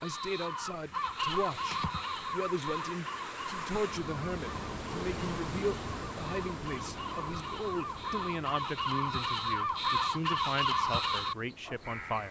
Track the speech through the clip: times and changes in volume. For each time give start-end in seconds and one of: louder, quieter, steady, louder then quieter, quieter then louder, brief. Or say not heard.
0.0-12.2 steady.